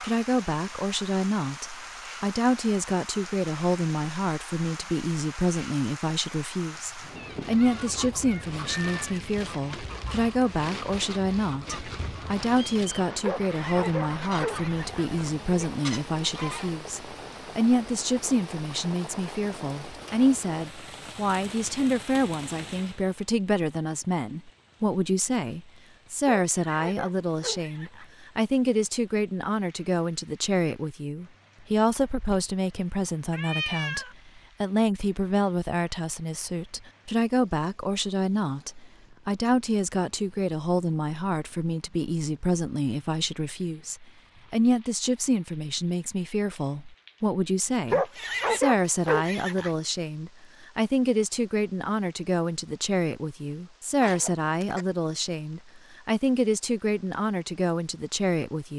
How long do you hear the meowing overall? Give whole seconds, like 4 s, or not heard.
4 s.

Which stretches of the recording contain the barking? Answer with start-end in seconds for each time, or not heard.
13.2-15.1, 26.4-28.1, 47.9-49.8.